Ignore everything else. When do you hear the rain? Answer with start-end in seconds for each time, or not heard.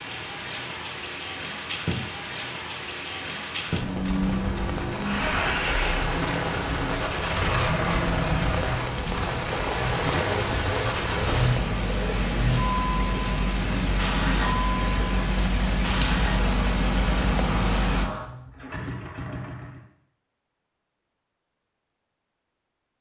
0.0-18.1.